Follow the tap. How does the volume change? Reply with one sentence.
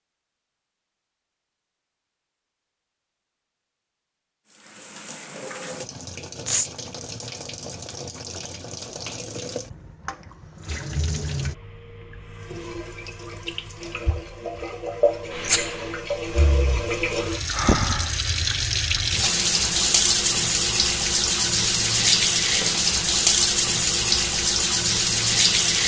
The volume of the tap goes up.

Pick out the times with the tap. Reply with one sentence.
The tap can be heard from 4.5 to 25.8 s.